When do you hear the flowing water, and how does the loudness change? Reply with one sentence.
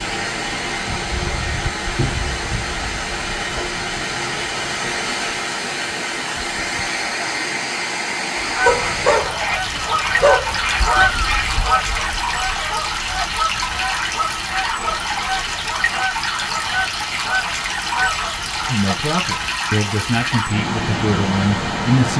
You can hear the flowing water from 0.0 to 22.1 s, at a steady volume.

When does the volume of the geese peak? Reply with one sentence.
The volume of the geese peaks at 11 seconds.